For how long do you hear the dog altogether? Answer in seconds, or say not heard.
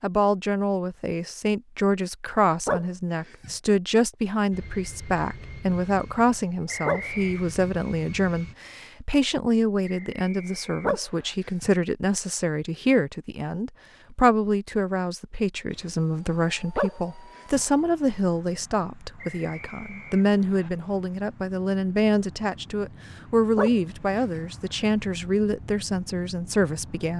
4 s.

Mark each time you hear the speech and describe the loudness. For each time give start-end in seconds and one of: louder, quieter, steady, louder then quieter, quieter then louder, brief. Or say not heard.
0.0-27.1 steady.